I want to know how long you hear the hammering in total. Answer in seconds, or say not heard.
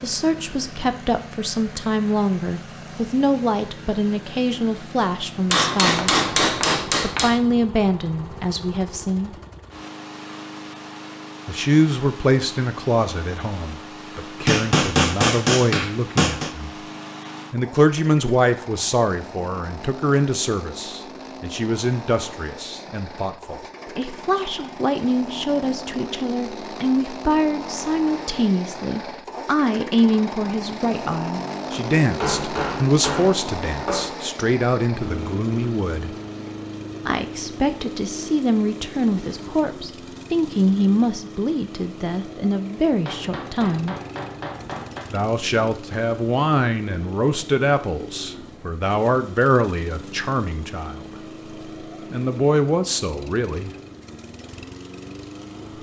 8 s.